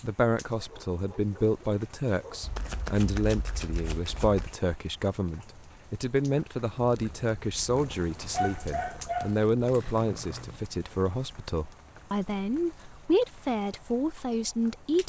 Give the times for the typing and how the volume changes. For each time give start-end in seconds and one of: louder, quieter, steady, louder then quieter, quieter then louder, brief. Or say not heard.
not heard.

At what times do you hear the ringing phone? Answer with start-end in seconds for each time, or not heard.
not heard.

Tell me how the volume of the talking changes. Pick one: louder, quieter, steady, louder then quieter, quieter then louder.
steady.